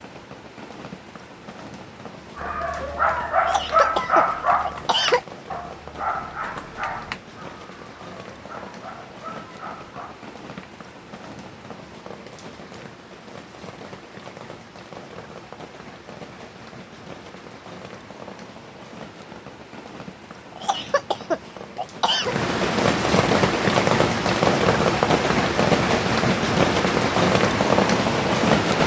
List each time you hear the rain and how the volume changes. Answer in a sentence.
You can hear the rain from 0.0 to 28.8 s, getting louder.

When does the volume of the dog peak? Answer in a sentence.
The loudest moment of the dog is at 4 seconds.